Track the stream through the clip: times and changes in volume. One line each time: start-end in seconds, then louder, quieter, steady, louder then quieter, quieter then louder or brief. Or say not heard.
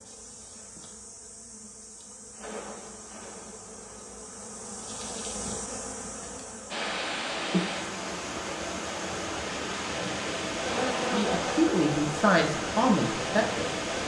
6.7-14.0 steady.